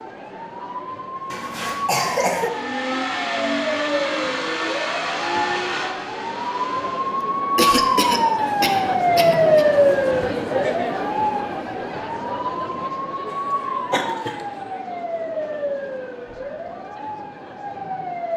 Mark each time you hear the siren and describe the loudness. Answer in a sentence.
The siren can be heard from 0.0 to 18.3 s, getting louder then quieter.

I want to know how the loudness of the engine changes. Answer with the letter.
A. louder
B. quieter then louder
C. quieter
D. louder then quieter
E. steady
C.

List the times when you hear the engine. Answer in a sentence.
The engine can be heard from 2.4 to 7.2 s.